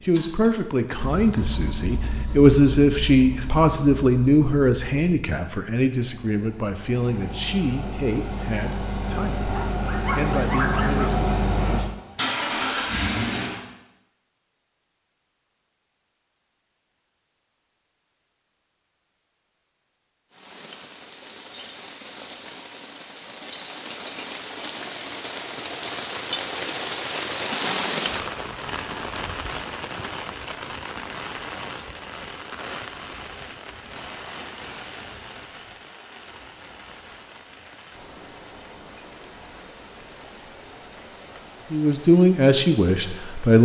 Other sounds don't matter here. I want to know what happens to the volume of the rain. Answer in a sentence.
The loudness of the rain goes up, then down.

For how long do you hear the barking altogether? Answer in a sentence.
You can hear the barking for 2 seconds altogether.